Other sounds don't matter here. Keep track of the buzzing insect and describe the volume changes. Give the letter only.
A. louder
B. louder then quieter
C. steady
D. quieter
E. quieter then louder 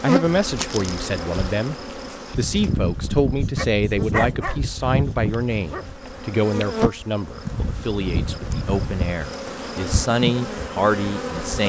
C.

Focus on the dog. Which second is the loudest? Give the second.
4 s.